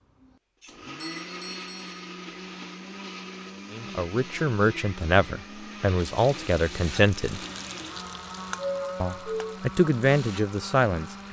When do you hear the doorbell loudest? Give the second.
9 s.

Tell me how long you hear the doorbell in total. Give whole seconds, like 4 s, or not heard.
2 s.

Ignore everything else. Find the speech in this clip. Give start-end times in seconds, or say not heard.
3.7-7.4, 9.0-11.2.